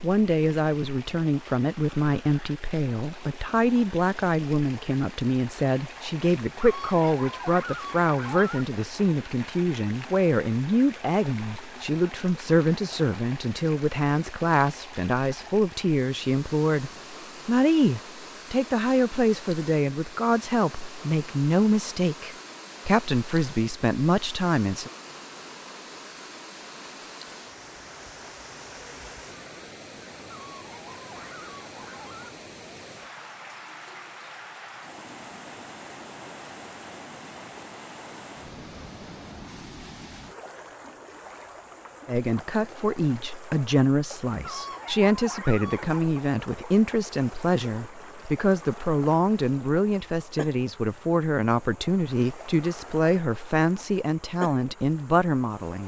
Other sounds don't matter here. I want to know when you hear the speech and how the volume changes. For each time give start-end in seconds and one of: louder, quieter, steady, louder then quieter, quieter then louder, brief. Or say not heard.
0.0-24.9 steady
42.0-55.8 steady.